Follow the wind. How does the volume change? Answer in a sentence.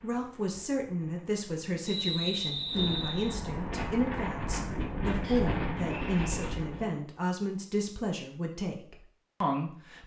The volume of the wind goes up.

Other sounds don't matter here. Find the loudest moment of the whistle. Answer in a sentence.
The volume of the whistle peaks at 2 seconds.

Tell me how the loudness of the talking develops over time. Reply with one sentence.
The volume of the talking stays about the same.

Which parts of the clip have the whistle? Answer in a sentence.
The whistle can be heard from 1.9 to 3.4 s and from 5.2 to 6.2 s.